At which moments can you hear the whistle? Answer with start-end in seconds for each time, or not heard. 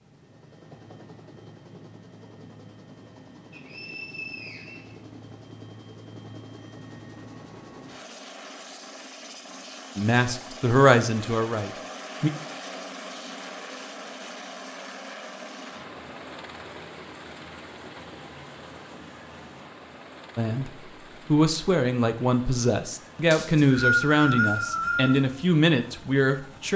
3.5-5.0, 23.3-25.2.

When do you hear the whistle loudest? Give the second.
24 s.